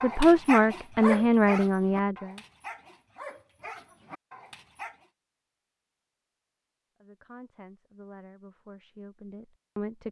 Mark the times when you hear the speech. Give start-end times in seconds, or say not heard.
0.0-2.4, 7.0-10.0.